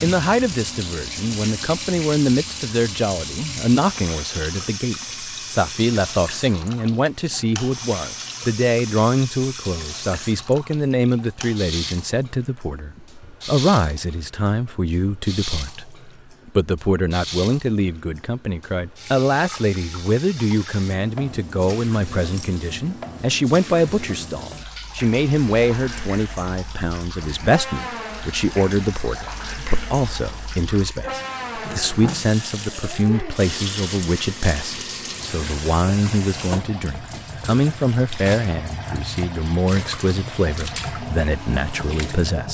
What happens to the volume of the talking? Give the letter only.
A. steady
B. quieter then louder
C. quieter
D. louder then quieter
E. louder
A.